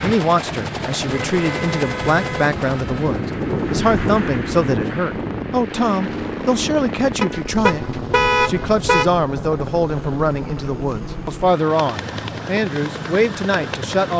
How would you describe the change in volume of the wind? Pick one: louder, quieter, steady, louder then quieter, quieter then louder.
louder then quieter.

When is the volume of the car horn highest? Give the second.
8 s.